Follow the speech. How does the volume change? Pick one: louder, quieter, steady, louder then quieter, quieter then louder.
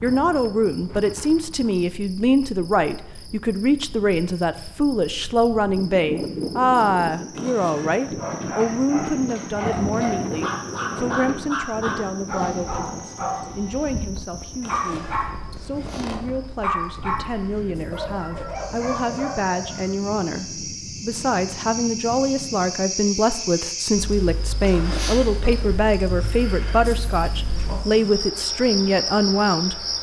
quieter then louder.